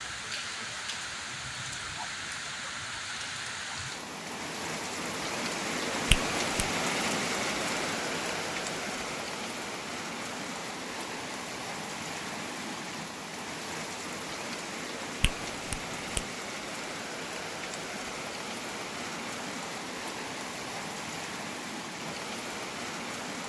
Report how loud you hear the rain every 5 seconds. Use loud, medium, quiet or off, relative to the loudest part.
medium, loud, medium, medium, medium.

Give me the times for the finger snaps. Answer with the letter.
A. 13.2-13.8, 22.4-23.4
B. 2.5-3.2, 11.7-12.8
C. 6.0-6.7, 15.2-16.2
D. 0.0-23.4
C.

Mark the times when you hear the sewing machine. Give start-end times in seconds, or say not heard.
not heard.